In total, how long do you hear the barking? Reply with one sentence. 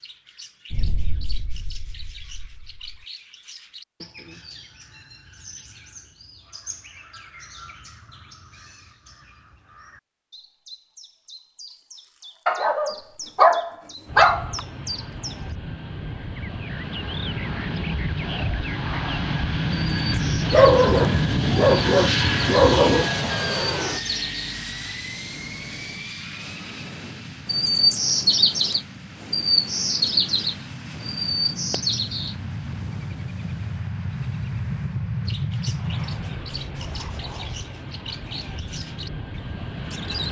The barking can be heard for 5 seconds in total.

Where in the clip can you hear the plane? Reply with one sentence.
The plane can be heard from 14.1 to 40.2 s.